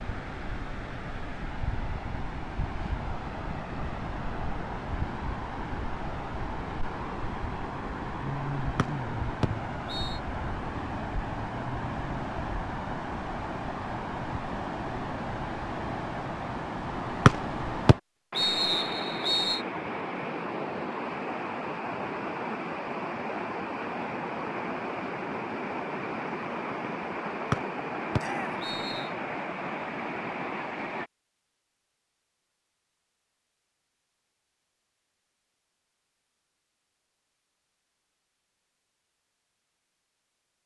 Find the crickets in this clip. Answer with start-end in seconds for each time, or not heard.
not heard.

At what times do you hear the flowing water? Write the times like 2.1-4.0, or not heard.
0.0-31.1.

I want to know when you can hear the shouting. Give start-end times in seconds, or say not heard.
28.1-28.6.